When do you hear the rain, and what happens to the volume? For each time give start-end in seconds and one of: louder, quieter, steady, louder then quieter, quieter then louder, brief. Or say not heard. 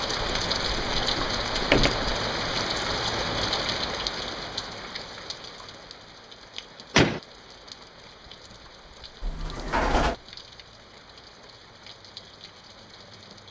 0.0-13.4 quieter.